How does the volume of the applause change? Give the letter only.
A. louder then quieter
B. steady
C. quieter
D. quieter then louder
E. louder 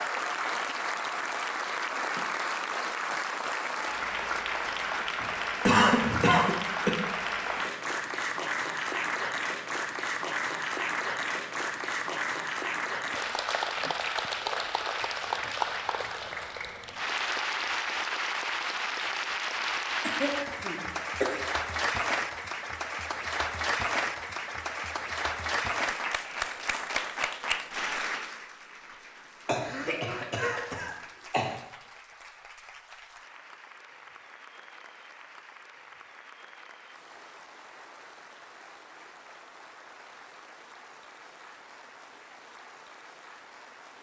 C.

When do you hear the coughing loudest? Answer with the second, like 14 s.
6 s.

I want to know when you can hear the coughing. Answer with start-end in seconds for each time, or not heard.
5.2-7.0, 20.0-21.4, 29.4-31.5.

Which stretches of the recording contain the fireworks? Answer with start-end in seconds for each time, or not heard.
not heard.